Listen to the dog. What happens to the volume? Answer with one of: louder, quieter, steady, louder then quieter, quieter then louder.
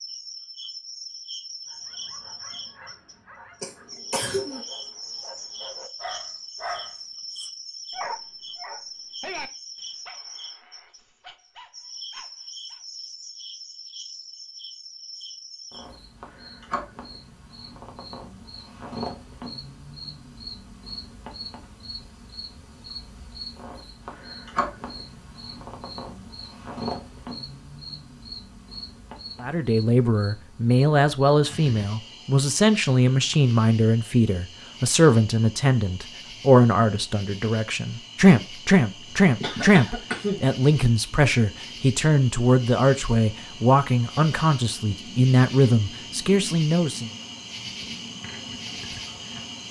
louder then quieter.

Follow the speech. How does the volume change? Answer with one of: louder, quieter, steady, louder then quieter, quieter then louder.
steady.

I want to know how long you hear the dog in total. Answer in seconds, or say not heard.
11 s.